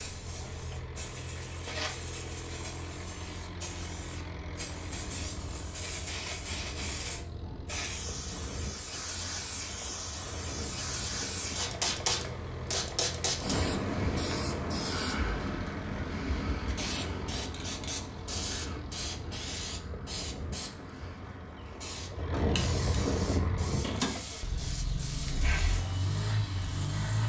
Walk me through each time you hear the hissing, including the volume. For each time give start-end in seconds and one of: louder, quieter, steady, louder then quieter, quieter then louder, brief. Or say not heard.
0.0-25.9 louder then quieter.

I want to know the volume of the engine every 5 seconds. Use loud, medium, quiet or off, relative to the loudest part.
medium, medium, medium, medium, loud, loud.